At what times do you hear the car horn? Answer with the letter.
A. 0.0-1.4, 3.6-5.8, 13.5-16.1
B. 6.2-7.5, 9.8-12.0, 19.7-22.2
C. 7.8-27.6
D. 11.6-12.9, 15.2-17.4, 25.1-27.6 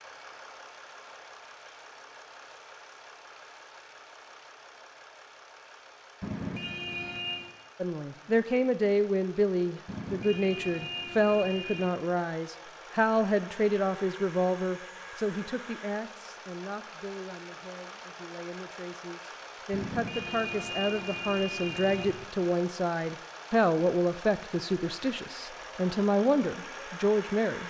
B.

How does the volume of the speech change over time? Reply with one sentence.
The volume of the speech goes down, then up.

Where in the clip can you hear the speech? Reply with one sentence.
You can hear the speech from 7.8 to 27.6 s.